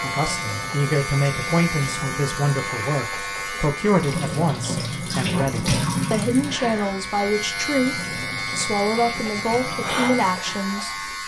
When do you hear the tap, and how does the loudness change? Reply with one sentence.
You can hear the tap from 0.1 to 11.2 s, getting louder then quieter.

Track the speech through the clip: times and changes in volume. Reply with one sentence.
The speech can be heard from 0.0 to 10.9 s, at a steady volume.